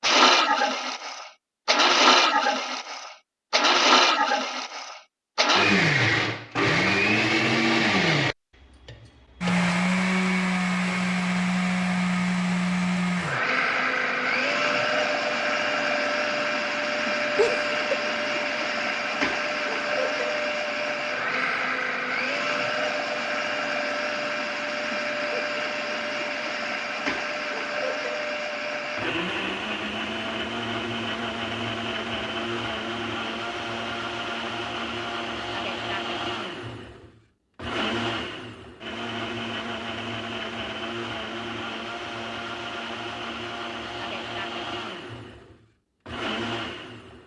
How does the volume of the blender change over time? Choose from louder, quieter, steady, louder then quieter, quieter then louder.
quieter.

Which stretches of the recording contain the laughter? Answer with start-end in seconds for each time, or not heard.
17.4-17.9.